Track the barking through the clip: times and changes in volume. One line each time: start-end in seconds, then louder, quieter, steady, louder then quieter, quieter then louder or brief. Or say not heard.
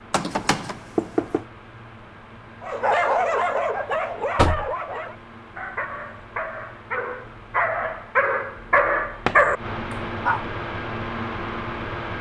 2.6-10.4 quieter then louder.